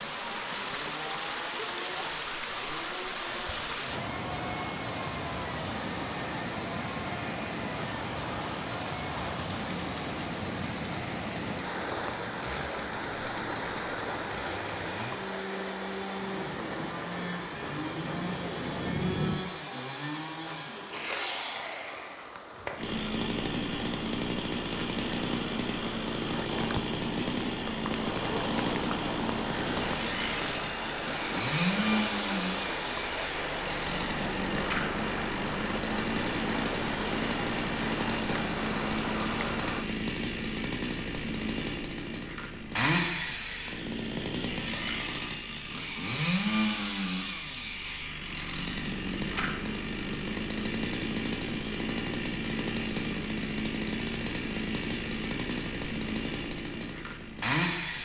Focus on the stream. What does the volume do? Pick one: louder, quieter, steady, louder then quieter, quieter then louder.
quieter then louder.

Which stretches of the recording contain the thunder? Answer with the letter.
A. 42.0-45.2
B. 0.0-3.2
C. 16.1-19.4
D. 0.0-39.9
C.